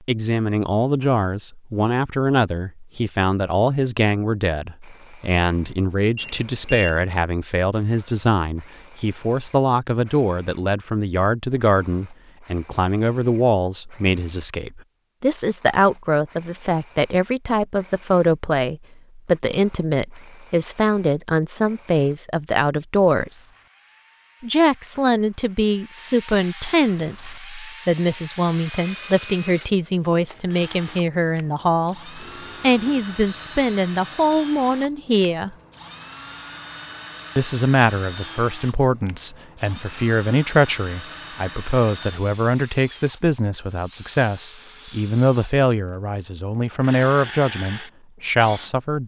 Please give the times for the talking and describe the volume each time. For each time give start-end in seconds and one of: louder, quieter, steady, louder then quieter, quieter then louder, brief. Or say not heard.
0.1-23.4 steady
24.4-35.5 steady
37.4-49.0 steady.